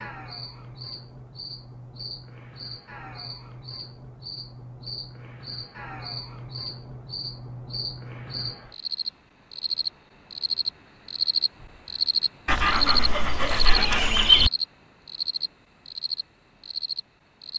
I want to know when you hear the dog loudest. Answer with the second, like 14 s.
14 s.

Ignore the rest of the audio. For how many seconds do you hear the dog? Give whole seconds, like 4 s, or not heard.
2 s.